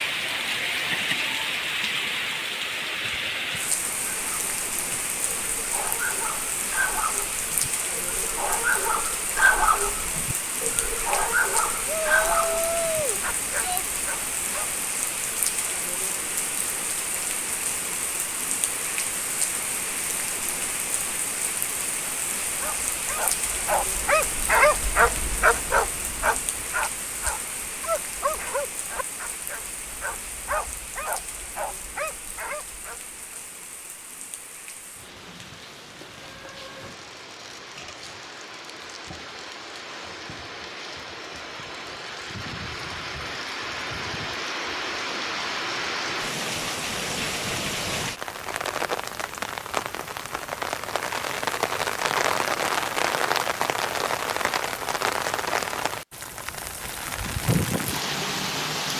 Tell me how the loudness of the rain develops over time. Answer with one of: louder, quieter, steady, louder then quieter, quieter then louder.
quieter then louder.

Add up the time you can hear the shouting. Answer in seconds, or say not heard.
2 s.